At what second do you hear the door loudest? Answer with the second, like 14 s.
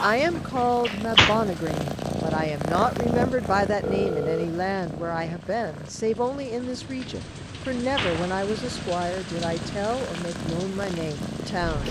1 s.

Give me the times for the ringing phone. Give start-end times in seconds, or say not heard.
3.8-4.5.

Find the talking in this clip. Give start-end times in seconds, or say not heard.
0.0-11.8.